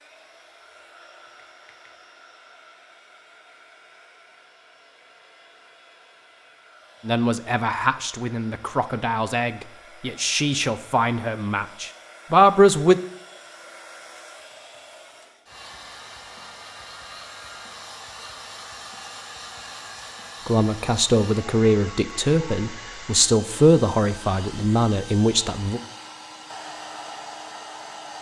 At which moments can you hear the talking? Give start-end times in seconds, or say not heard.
7.0-12.9, 20.4-25.8.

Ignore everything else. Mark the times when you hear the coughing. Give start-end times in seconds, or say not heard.
not heard.